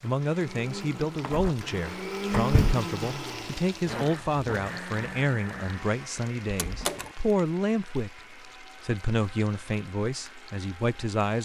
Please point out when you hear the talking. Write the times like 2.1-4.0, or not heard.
0.0-11.4.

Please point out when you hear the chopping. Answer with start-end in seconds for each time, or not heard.
not heard.